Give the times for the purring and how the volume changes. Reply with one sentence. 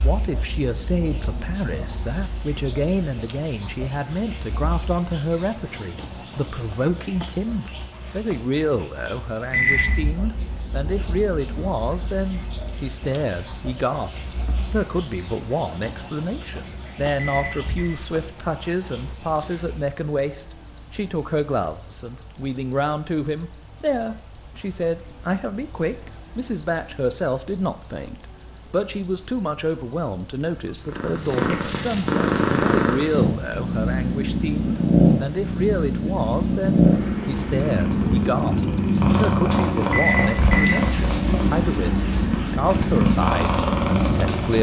The purring can be heard from 30.9 to 44.5 s, at a steady volume.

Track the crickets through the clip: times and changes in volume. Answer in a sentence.
The crickets can be heard from 0.0 to 44.5 s, at a steady volume.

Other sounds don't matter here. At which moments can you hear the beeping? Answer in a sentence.
The beeping can be heard from 9.5 to 10.1 s, from 17.1 to 17.9 s and from 39.9 to 40.9 s.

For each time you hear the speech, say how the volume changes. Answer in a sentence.
You can hear the speech from 0.0 to 44.5 s, at a steady volume.